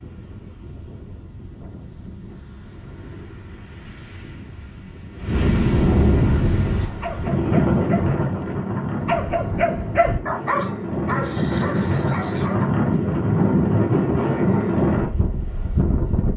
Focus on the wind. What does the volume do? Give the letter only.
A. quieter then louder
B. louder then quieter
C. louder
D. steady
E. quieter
C.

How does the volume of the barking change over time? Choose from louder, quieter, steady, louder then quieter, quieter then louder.
louder then quieter.